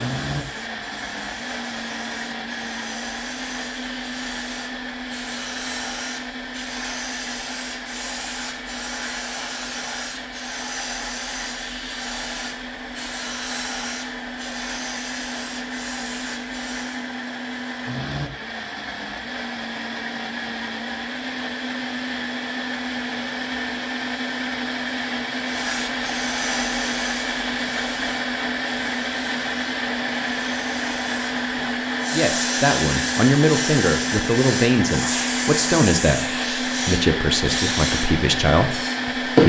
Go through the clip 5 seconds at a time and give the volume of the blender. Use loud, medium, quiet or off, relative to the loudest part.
medium, medium, medium, medium, loud, loud, loud, loud.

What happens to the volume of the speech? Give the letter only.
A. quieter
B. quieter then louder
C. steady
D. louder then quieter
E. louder
C.